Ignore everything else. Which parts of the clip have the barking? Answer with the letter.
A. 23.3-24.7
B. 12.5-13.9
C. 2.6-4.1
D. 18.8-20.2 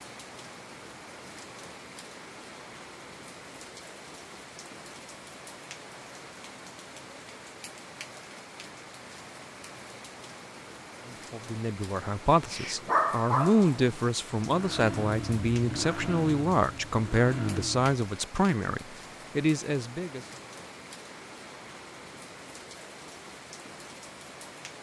B.